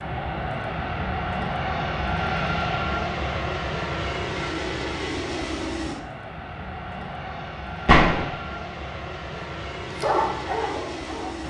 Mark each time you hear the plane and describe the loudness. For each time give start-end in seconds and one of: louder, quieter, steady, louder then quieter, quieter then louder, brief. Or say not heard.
0.0-11.4 quieter.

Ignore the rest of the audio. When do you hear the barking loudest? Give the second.
10 s.